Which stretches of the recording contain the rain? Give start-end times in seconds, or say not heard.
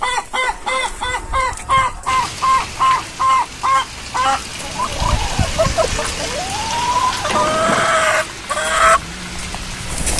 2.0-10.1.